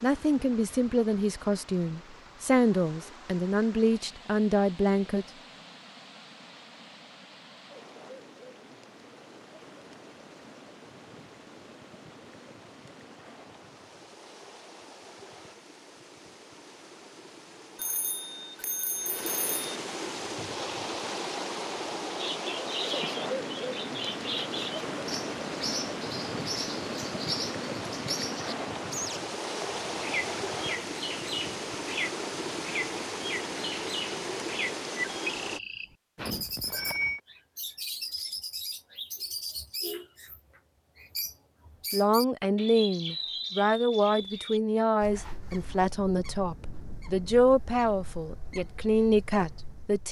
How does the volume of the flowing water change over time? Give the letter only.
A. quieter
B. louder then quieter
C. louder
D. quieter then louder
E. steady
C.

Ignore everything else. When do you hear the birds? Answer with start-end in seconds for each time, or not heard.
22.1-50.0.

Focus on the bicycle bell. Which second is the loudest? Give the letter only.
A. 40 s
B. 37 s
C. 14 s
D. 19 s
B.